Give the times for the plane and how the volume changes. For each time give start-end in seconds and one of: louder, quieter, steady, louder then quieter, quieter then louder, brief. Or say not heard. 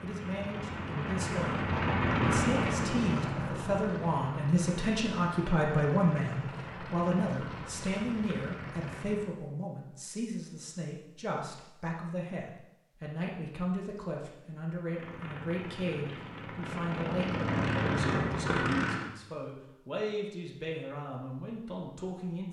0.0-9.3 quieter
14.8-19.1 louder.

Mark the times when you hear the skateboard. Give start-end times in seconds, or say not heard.
not heard.